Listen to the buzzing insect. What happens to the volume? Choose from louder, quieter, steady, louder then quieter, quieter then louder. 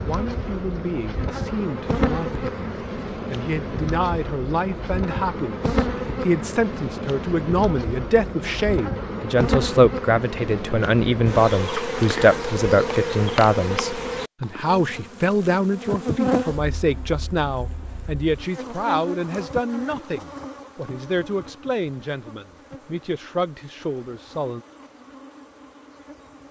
quieter.